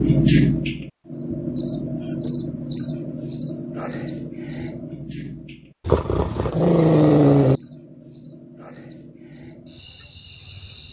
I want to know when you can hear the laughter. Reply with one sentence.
You can't hear the laughter here.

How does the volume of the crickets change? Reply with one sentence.
The loudness of the crickets goes down.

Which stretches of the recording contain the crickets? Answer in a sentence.
You can hear the crickets from 0.0 to 10.8 s.